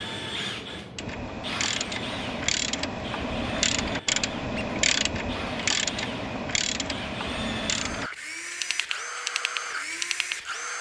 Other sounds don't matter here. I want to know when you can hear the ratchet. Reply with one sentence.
The ratchet can be heard from 0.9 to 10.4 s.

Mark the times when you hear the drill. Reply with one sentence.
You can hear the drill from 0.0 to 10.7 s.